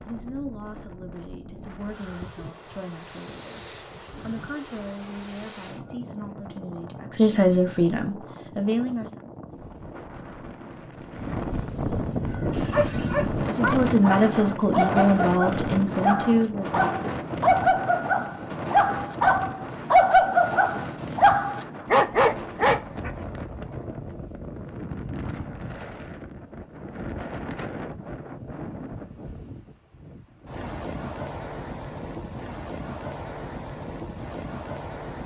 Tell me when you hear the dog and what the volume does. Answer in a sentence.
The dog can be heard from 12.3 to 23.1 s, getting louder.